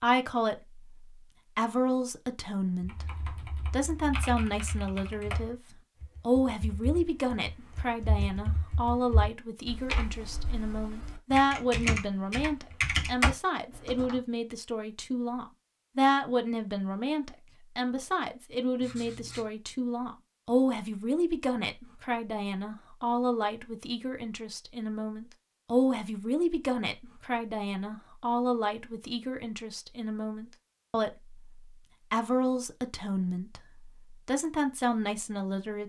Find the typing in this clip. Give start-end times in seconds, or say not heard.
2.8-14.2.